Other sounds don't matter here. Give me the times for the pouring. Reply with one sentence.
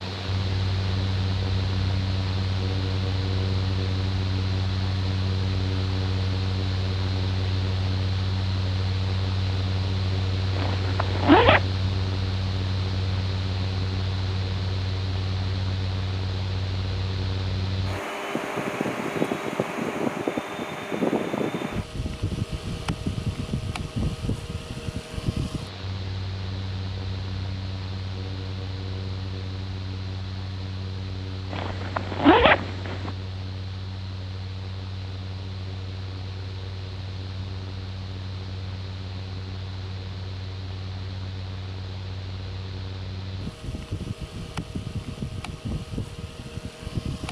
The pouring can't be heard in this clip.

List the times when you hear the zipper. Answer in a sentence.
You can hear the zipper from 10.6 to 11.7 s and from 31.5 to 33.1 s.